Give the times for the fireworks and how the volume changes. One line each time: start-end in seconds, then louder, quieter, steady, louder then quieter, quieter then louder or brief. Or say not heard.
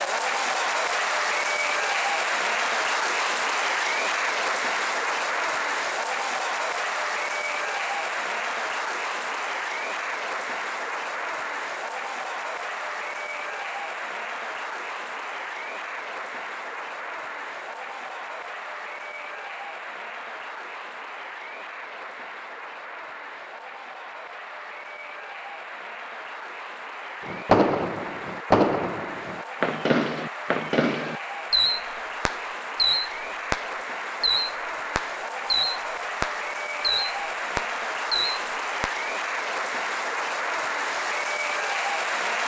27.2-39.0 steady.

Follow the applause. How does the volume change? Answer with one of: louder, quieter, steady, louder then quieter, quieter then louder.
quieter then louder.